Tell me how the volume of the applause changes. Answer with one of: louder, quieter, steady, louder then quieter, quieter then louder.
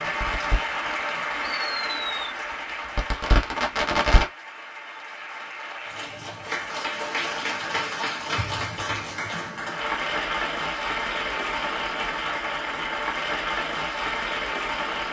quieter then louder.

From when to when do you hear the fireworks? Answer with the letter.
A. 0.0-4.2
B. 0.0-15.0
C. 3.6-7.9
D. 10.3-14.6
A.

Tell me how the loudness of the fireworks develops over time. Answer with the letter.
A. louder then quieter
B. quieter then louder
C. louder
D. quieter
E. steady
B.